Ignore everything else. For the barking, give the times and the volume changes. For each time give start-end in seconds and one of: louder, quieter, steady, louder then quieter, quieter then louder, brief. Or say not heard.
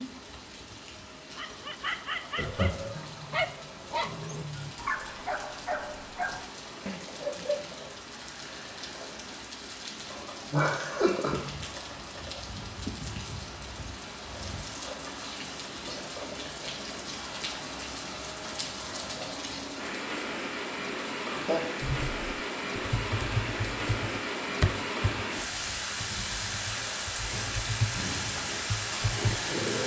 1.4-7.8 steady.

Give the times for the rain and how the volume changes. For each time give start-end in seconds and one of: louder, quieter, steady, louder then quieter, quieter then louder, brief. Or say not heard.
0.0-29.8 louder.